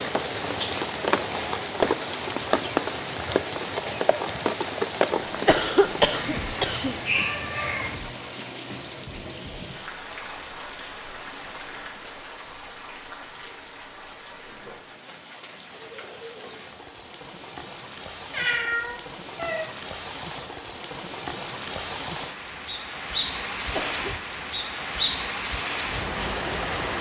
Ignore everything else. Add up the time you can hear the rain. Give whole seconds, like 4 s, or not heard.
27 s.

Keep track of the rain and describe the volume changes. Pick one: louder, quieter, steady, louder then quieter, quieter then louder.
quieter then louder.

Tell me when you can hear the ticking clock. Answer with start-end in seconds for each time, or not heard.
not heard.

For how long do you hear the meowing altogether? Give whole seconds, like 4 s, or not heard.
3 s.